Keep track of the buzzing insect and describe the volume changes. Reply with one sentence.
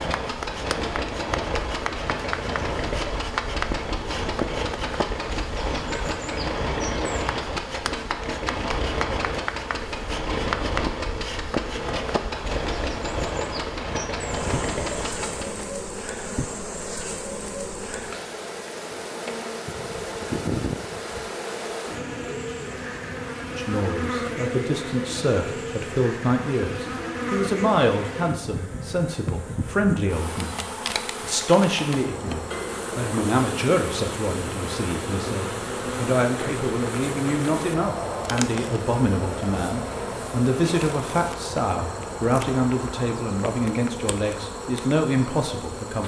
The volume of the buzzing insect stays about the same.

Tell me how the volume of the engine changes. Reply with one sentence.
The volume of the engine stays about the same.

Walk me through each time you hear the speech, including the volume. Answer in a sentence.
You can hear the speech from 23.6 to 46.0 s, at a steady volume.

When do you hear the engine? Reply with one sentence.
The engine can be heard from 0.0 to 15.7 s.